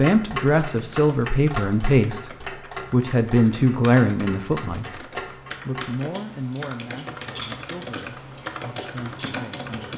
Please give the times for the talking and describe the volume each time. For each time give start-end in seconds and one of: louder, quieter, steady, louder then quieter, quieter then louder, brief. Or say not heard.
0.0-9.9 quieter.